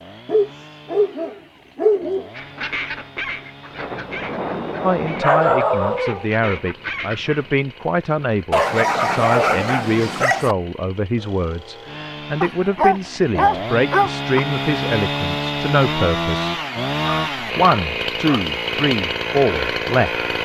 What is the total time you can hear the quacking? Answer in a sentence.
You can hear the quacking for 5 seconds altogether.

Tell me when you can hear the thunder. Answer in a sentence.
The thunder can be heard from 3.7 to 5.2 s.